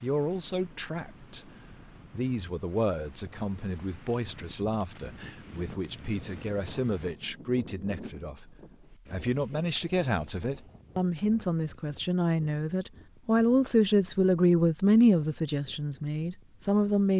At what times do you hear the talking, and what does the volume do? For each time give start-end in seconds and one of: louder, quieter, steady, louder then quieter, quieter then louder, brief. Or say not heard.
0.0-17.1 louder.